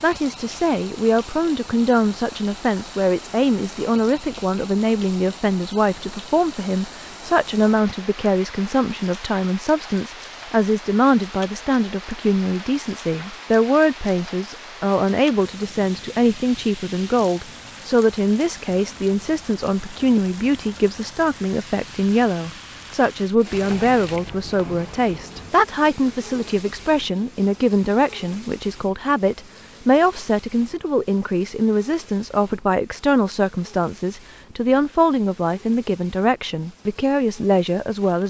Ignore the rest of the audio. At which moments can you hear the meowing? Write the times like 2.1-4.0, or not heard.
not heard.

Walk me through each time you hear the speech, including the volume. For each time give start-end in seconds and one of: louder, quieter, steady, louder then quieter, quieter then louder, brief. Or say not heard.
0.0-38.2 steady.